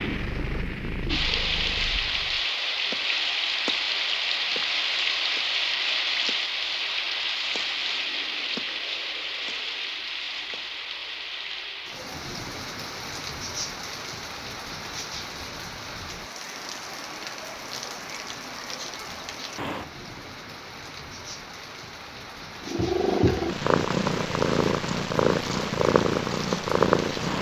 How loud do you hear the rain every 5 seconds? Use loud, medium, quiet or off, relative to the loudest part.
loud, loud, medium, medium, quiet, medium.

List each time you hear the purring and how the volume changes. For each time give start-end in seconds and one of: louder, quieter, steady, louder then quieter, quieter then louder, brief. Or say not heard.
0.0-2.4 brief
22.6-27.3 steady.